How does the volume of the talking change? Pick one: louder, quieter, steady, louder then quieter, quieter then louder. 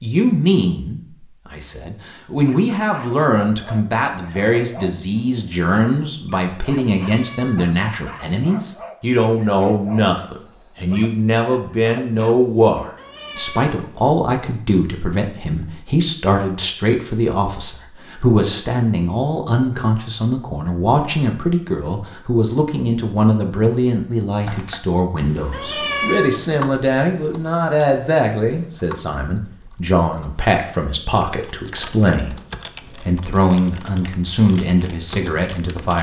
steady.